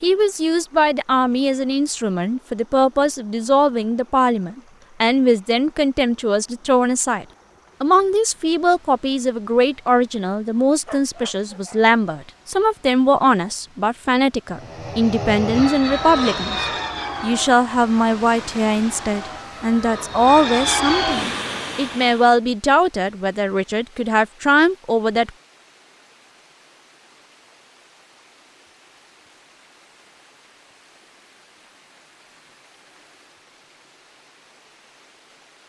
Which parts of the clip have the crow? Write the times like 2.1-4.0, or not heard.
not heard.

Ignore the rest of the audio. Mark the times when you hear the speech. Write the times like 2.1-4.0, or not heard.
0.0-25.3.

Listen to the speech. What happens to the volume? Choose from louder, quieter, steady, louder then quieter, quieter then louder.
steady.